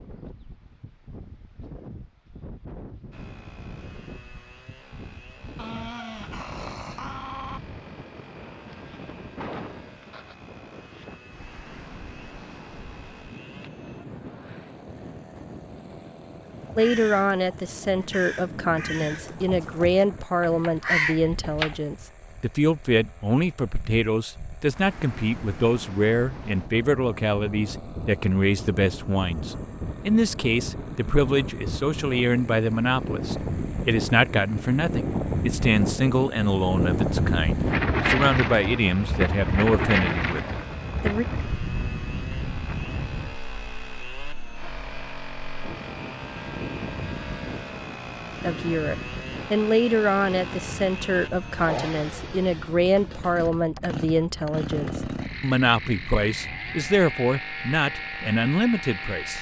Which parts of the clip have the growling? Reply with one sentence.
You can hear the growling from 5.5 to 7.6 s.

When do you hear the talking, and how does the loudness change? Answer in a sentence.
The talking can be heard from 16.8 to 41.2 s, at a steady volume; and from 48.4 to 59.3 s, at a steady volume.